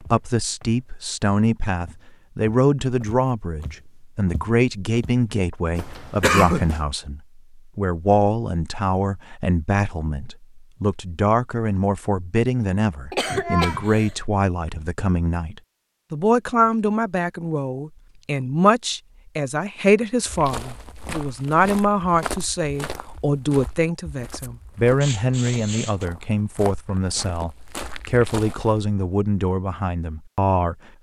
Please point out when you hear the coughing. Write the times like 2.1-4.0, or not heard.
6.2-6.7, 13.1-14.1, 25.0-26.1.